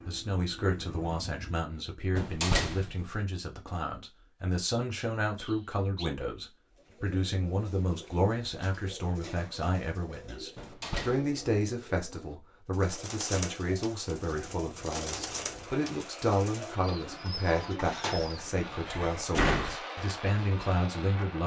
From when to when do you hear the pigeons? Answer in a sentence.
The pigeons can be heard from 6.8 to 18.6 s.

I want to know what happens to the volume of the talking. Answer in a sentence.
The loudness of the talking stays about the same.